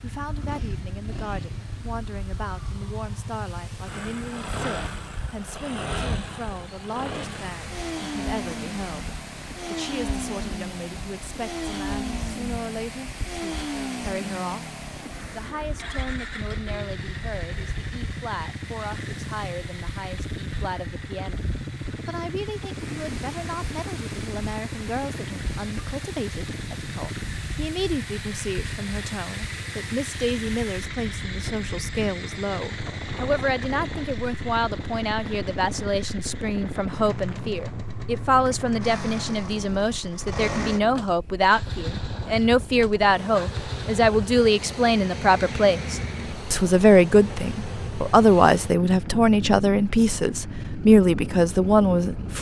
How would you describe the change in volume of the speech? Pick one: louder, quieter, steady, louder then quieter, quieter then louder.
louder.